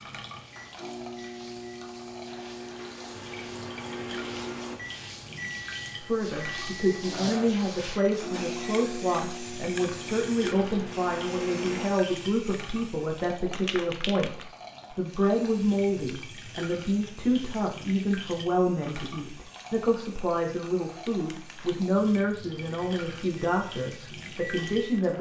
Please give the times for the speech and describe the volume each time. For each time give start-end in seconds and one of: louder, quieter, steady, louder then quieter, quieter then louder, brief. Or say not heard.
6.0-25.1 steady.